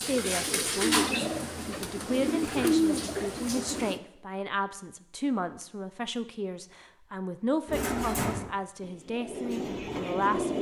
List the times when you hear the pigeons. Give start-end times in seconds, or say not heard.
0.0-4.0, 7.7-10.5.